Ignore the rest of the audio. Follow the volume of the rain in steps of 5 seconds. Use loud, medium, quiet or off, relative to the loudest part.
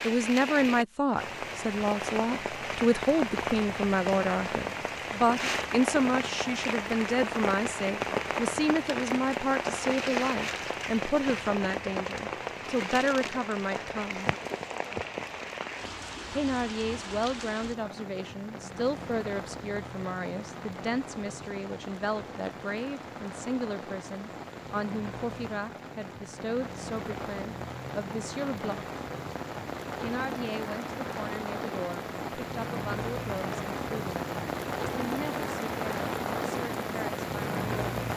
loud, loud, loud, medium, medium, medium, loud, loud.